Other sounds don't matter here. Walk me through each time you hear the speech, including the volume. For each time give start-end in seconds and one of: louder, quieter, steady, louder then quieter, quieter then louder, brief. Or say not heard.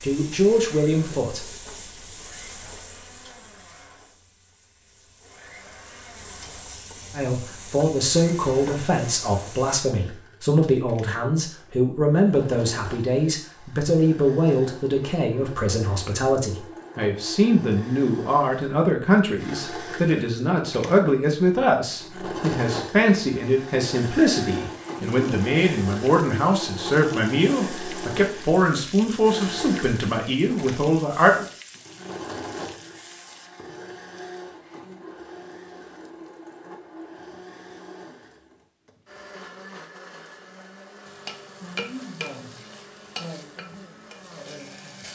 0.0-1.4 brief
7.2-31.4 steady.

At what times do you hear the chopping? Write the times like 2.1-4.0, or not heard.
not heard.